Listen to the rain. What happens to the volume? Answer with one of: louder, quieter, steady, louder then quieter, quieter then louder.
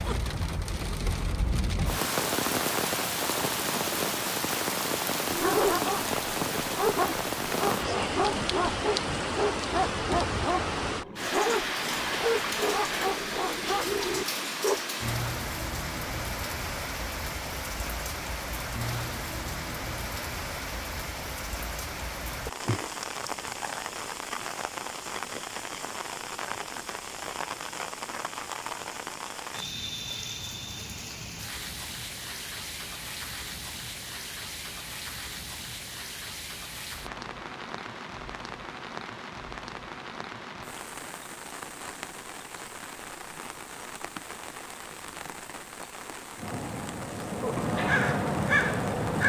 quieter.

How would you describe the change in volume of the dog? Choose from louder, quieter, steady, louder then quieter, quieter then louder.
steady.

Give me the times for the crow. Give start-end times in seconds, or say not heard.
46.4-49.2.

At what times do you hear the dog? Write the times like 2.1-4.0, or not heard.
5.3-14.8.